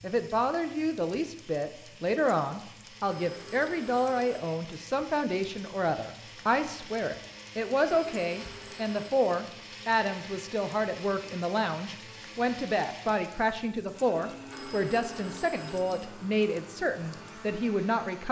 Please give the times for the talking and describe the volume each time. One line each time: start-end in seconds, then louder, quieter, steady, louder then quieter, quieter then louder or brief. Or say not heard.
0.0-18.2 steady.